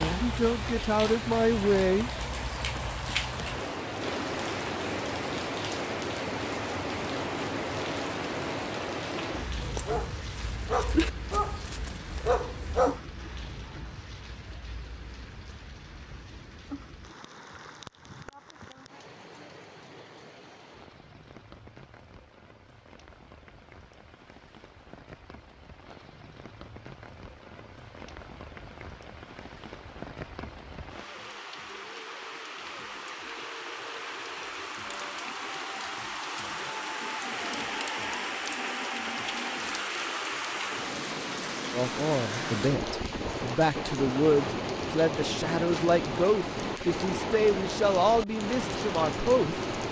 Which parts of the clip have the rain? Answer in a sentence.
You can hear the rain from 0.0 to 49.8 s.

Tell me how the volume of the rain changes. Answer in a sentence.
The loudness of the rain goes down, then up.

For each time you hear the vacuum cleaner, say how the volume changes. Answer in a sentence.
The vacuum cleaner can't be heard in this clip.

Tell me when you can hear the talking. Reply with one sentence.
The talking can be heard from 0.1 to 2.1 s and from 41.7 to 49.6 s.